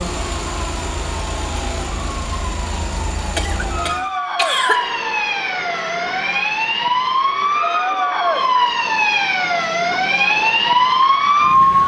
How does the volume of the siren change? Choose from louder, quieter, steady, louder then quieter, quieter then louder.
louder.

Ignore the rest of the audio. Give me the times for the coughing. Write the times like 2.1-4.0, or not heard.
3.4-4.8.